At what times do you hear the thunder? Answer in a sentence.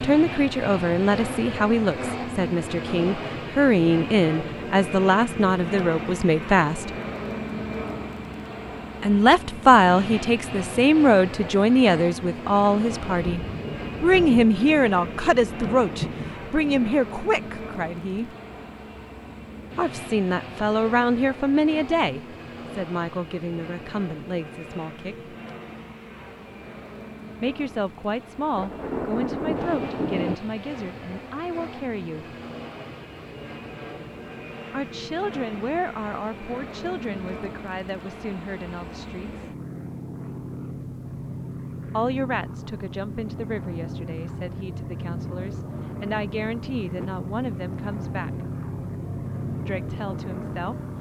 The thunder can be heard from 13.1 to 16.9 s and from 28.6 to 30.4 s.